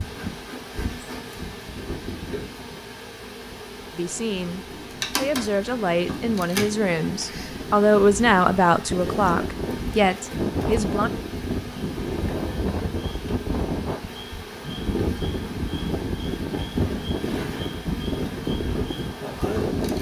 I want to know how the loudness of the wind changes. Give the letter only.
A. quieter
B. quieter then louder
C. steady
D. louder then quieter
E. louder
E.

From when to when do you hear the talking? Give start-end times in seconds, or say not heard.
4.0-11.1.